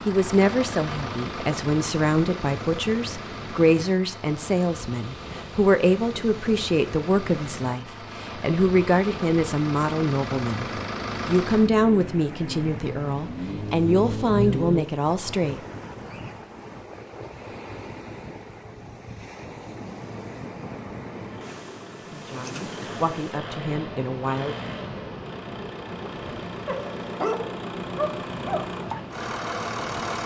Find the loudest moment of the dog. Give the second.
27 s.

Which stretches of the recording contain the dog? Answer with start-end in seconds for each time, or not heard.
26.6-28.7.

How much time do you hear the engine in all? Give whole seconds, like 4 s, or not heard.
25 s.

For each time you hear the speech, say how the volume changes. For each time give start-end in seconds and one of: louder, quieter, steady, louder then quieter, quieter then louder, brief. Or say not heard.
0.1-15.6 steady
21.9-24.6 brief.